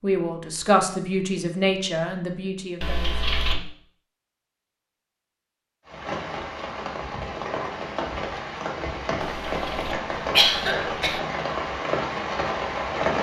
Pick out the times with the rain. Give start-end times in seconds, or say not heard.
5.8-13.1.